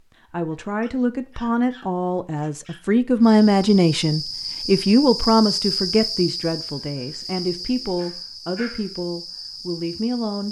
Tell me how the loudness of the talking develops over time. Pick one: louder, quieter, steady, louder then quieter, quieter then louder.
louder then quieter.